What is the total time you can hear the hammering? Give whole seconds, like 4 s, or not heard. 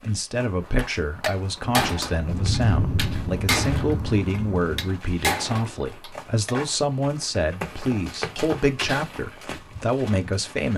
6 s.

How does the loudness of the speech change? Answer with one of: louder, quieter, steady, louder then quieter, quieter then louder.
steady.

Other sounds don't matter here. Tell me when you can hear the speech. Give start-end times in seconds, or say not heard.
0.0-10.7.